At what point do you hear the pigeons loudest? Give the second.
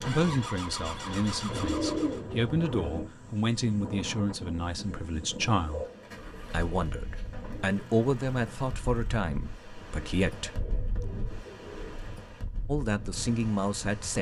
2 s.